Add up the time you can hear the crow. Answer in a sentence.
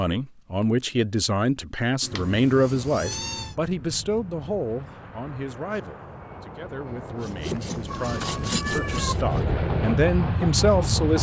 The crow can't be heard in this clip.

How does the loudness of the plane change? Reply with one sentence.
The volume of the plane goes up.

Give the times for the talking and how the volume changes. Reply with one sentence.
The talking can be heard from 0.0 to 11.1 s, getting quieter then louder.